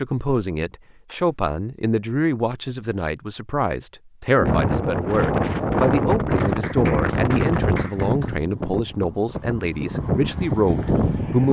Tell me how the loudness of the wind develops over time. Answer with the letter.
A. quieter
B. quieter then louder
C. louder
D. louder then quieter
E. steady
B.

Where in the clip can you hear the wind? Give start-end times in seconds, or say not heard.
4.3-11.4.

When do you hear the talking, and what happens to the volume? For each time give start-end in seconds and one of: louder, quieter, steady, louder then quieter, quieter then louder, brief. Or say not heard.
0.0-11.4 steady.